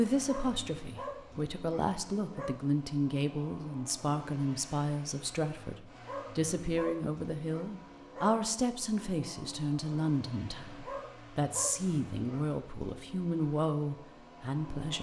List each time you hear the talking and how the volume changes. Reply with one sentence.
You can hear the talking from 0.0 to 14.9 s, at a steady volume.